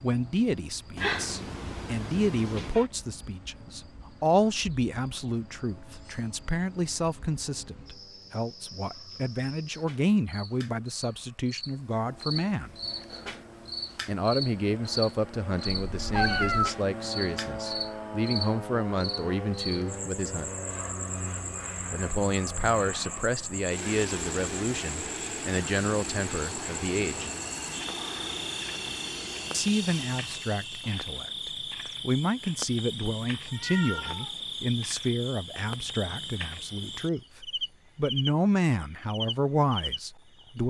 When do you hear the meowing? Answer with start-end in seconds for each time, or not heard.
0.9-2.9, 15.8-16.8, 33.5-34.4.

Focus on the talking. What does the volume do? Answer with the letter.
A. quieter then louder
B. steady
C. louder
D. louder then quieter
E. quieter
B.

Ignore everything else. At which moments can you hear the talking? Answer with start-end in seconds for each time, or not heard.
0.0-12.7, 14.1-20.5, 21.9-27.3, 29.5-40.6.